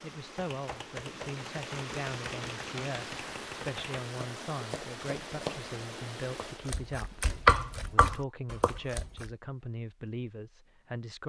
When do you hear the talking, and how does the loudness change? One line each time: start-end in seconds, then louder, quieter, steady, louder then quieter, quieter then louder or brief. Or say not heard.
0.0-11.2 steady.